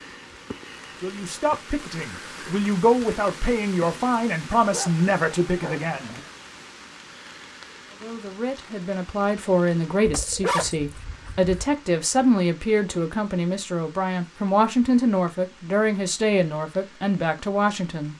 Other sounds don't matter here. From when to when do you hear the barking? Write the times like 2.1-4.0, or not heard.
4.7-6.3, 10.1-11.7.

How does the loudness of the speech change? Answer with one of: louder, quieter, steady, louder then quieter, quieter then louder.
steady.